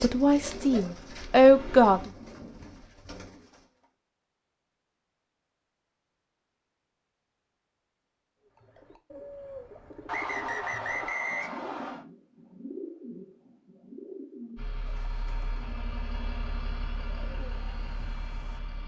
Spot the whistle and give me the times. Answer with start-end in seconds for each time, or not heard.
10.1-12.1.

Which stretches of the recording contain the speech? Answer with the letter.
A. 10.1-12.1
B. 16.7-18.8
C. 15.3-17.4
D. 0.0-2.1
D.